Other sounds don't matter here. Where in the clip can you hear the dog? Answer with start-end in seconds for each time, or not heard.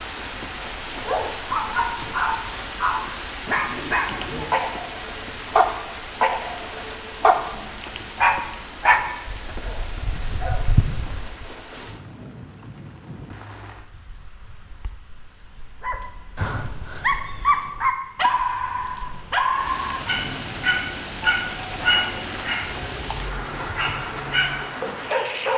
0.6-11.4, 15.8-25.5.